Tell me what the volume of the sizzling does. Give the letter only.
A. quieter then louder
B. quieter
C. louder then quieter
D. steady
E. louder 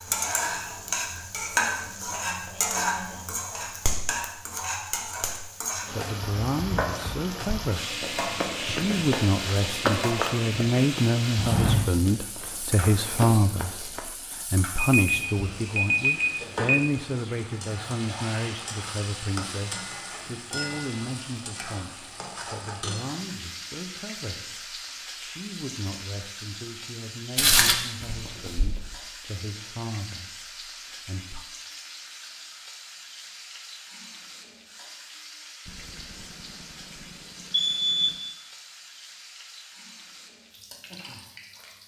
B.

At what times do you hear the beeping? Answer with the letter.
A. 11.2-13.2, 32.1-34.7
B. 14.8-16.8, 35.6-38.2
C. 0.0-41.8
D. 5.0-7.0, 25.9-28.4
B.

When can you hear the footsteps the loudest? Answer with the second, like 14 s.
28 s.